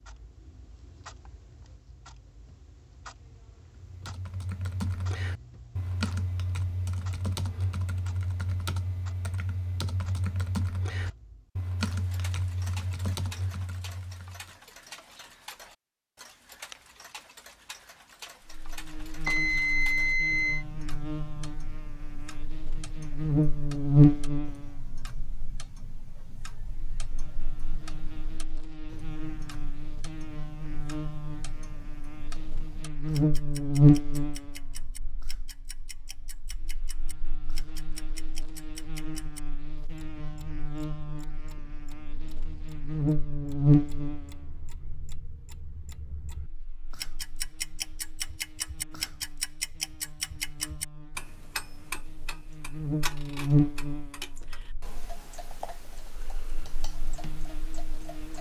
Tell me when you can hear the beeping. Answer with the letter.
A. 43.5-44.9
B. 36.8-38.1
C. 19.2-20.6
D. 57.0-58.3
C.